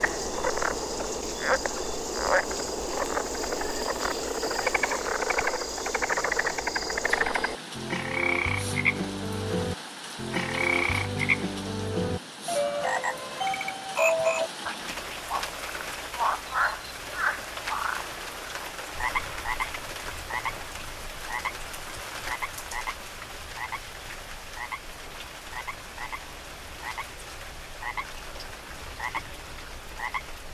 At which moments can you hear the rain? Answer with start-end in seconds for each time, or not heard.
0.0-30.4.